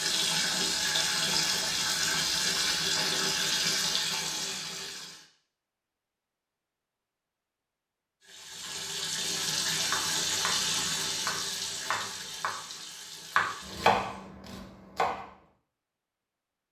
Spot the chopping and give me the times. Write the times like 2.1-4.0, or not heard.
9.9-10.6, 11.2-12.5, 13.3-15.2.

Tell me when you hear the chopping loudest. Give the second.
14 s.